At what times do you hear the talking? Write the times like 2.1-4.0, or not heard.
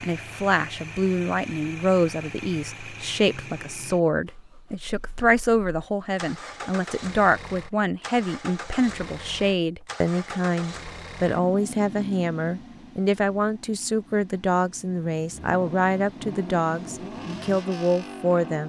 0.0-18.6.